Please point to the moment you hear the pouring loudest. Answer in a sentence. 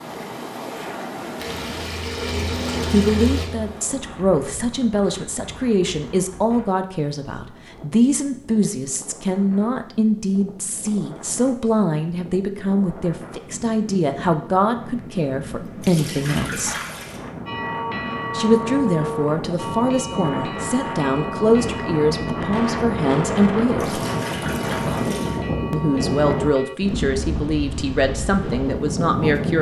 The loudest moment of the pouring is at 3 seconds.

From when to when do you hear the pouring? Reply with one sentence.
You can hear the pouring from 1.4 to 3.5 s, from 15.8 to 17.2 s and from 23.8 to 25.4 s.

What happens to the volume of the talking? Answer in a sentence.
The volume of the talking stays about the same.